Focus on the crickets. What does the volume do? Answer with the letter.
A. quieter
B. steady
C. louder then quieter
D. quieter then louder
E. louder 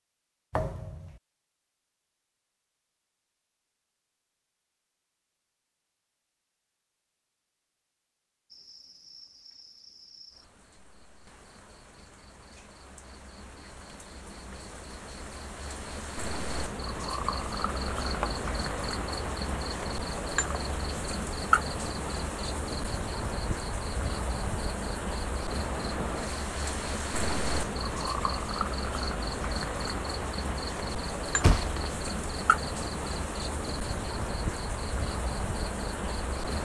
E.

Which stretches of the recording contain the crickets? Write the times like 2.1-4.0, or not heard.
8.5-36.5.